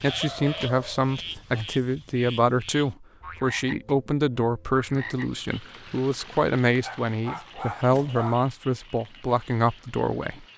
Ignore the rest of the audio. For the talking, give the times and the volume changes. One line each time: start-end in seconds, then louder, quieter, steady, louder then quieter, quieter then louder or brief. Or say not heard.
0.0-10.4 steady.